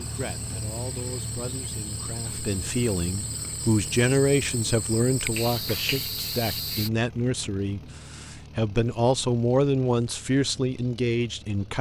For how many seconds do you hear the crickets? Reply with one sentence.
The crickets can be heard for 7 seconds in total.